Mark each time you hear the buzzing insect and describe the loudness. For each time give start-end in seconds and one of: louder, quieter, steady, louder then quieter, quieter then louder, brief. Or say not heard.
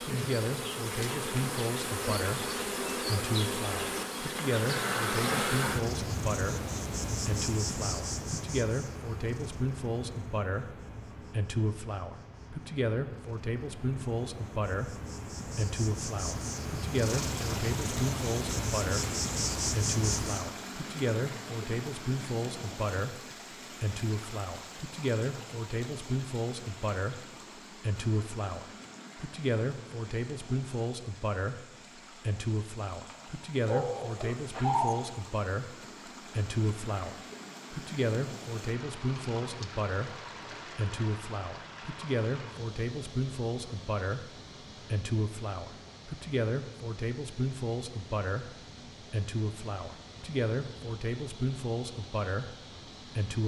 0.0-20.5 quieter then louder.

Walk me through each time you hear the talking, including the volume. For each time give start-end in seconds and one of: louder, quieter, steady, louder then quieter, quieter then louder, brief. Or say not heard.
0.1-53.4 steady.